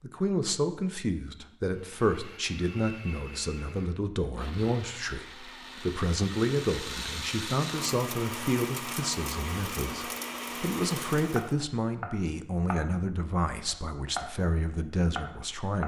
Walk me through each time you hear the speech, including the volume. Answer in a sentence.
You can hear the speech from 0.0 to 15.8 s, at a steady volume.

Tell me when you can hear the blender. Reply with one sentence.
The blender can be heard from 1.9 to 11.6 s.